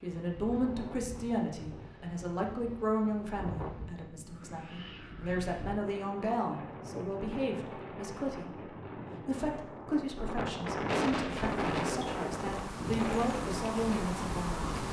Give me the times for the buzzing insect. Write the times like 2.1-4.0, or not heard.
11.2-14.8.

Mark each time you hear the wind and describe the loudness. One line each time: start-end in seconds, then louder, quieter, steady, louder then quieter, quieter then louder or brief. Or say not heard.
0.0-14.8 louder.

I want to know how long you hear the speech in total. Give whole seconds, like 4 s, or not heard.
14 s.